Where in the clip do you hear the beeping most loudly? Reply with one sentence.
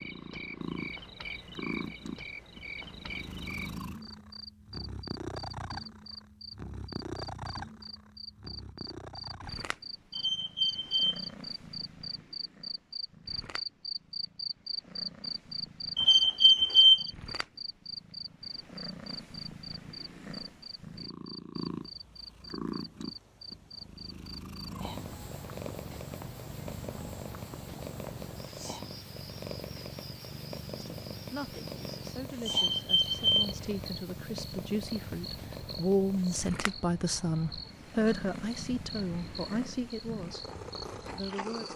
The loudest moment of the beeping is at 17 seconds.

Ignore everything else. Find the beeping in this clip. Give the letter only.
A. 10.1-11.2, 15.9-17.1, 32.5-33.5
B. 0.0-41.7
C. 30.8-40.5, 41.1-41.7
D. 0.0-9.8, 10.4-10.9
A.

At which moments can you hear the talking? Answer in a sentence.
The talking can be heard from 30.8 to 40.5 s and from 41.1 to 41.7 s.